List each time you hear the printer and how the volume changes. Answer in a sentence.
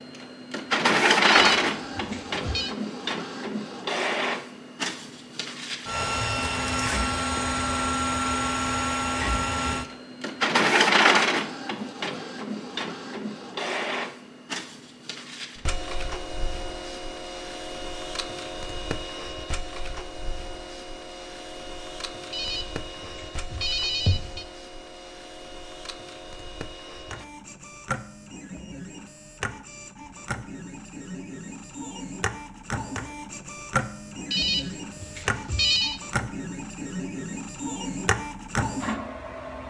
You can hear the printer from 0.0 to 39.6 s, getting quieter then louder.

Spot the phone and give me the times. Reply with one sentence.
You can hear the phone from 1.2 to 2.8 s, from 22.3 to 24.4 s and from 34.3 to 36.0 s.